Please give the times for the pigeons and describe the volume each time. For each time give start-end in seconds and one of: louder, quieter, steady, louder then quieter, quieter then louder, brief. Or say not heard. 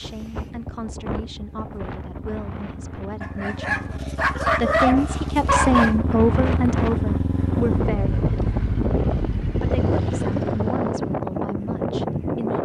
not heard.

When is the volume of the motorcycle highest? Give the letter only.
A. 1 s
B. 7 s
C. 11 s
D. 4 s
B.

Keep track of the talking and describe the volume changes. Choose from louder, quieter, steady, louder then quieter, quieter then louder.
louder then quieter.